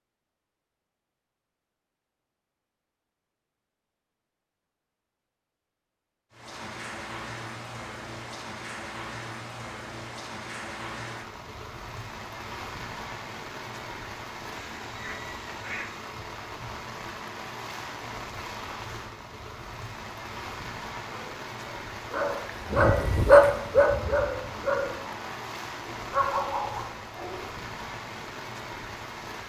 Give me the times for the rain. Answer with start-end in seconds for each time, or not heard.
6.3-29.4.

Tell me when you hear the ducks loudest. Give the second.
16 s.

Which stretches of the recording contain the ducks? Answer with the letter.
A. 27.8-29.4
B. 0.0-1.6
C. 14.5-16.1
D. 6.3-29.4
C.